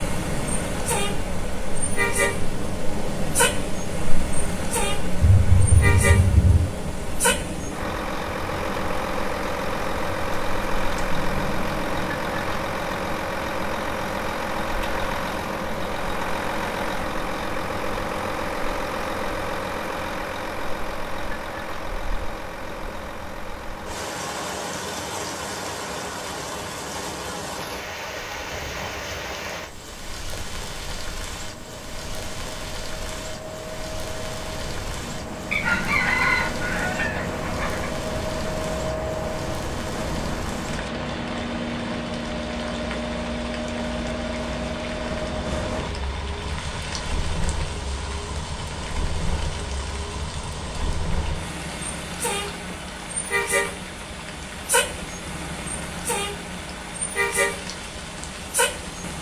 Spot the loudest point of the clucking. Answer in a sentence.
The volume of the clucking peaks at 36 seconds.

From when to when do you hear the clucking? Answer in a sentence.
You can hear the clucking from 35.5 to 37.9 s.